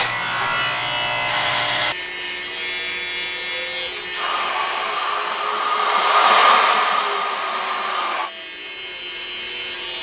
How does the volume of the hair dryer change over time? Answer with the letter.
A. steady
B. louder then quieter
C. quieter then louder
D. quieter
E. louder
B.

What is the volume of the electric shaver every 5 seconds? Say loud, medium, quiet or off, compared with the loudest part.
loud, medium.